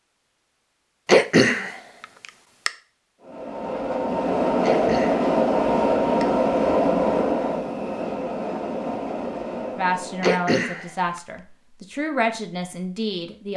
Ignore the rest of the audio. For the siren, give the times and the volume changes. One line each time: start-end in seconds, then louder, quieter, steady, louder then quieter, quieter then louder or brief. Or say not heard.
not heard.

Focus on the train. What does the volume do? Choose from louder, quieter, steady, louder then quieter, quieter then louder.
quieter.